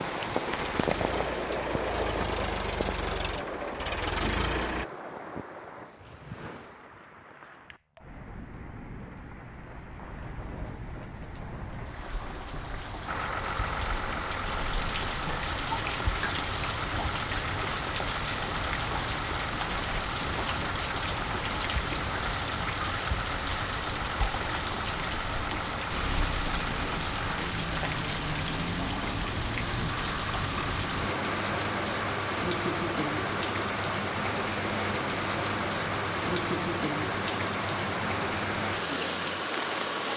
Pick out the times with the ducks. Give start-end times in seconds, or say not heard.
not heard.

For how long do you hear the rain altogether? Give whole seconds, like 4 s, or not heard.
40 s.